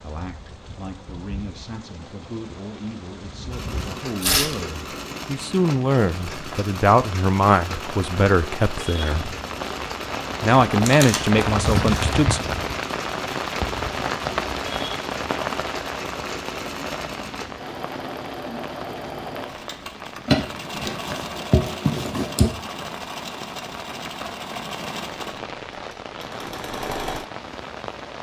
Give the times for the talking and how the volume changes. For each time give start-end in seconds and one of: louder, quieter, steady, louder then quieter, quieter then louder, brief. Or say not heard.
0.0-9.3 louder
10.4-12.4 brief.